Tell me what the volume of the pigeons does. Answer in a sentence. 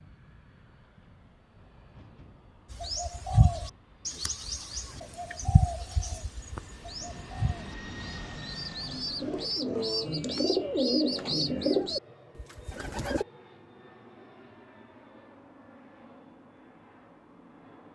The volume of the pigeons goes down, then up.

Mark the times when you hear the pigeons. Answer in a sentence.
The pigeons can be heard from 2.7 to 13.2 s.